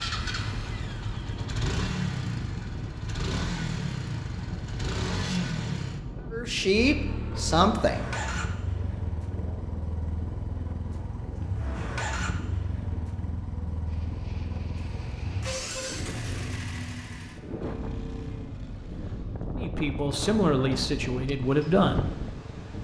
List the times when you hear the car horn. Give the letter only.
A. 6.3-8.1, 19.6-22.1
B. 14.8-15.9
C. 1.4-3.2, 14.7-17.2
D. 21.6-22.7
B.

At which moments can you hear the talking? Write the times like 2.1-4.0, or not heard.
6.3-8.1, 19.6-22.1.